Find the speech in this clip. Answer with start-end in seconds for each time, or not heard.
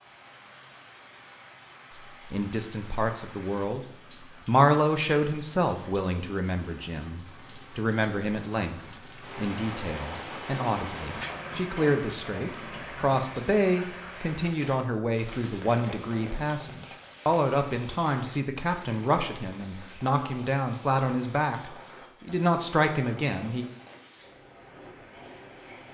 1.9-23.6.